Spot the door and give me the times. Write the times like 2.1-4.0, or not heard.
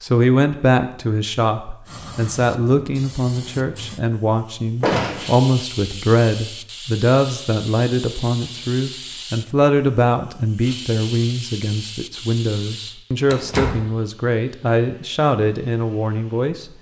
4.8-5.3, 13.2-13.8.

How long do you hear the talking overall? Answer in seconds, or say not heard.
17 s.